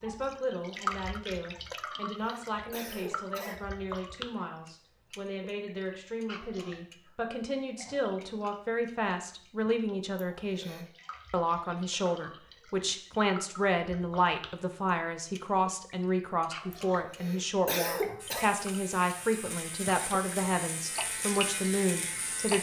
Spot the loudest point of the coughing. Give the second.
18 s.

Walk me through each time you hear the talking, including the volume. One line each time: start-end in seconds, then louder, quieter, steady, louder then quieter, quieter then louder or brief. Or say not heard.
0.0-22.5 louder.